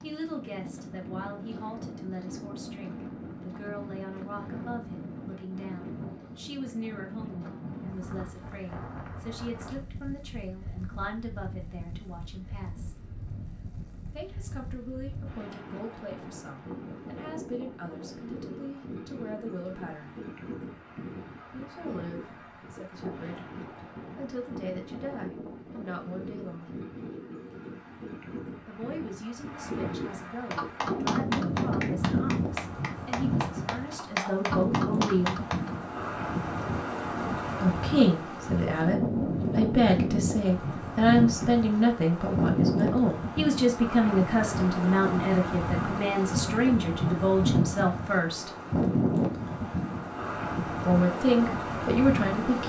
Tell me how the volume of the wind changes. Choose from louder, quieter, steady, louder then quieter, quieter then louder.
louder.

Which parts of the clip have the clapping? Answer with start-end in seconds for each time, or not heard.
30.5-35.7.